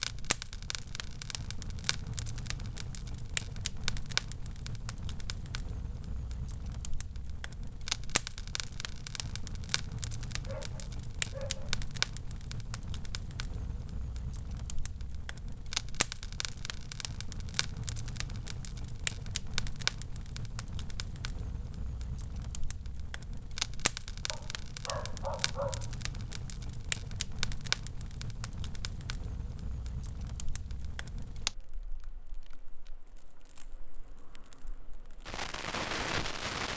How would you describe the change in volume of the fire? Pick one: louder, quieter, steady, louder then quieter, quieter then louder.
steady.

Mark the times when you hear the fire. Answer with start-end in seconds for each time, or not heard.
0.0-36.7.